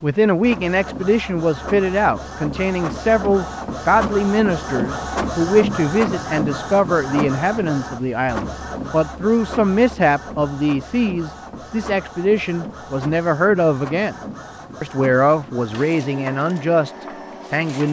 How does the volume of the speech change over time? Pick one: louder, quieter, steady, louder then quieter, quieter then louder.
steady.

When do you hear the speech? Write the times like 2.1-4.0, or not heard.
0.0-14.2, 14.8-17.8.